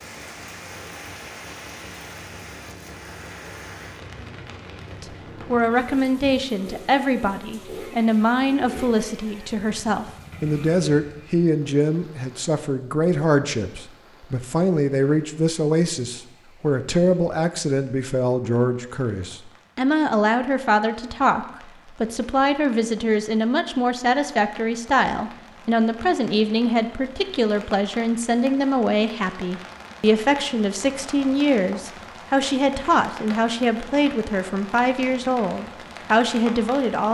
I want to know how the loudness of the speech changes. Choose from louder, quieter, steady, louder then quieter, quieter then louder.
steady.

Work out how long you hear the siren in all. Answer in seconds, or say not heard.
not heard.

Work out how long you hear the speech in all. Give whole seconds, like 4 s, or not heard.
32 s.